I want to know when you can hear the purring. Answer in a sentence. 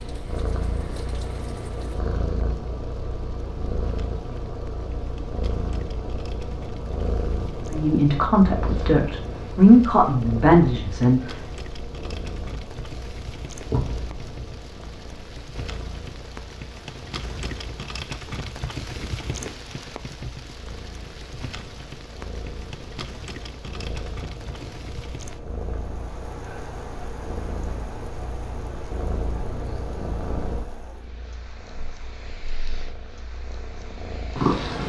You can hear the purring from 0.0 to 34.8 s.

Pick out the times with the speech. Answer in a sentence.
You can hear the speech from 7.7 to 11.2 s.